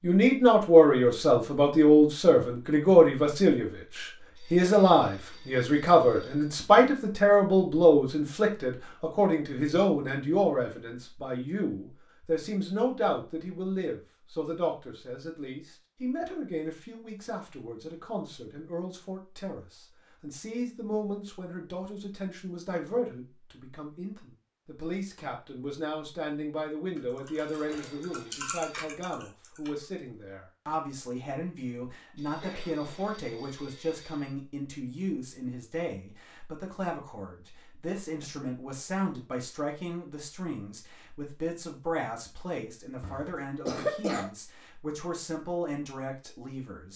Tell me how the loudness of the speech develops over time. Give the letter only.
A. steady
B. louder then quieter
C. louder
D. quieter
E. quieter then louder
D.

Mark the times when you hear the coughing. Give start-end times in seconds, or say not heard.
43.0-44.3.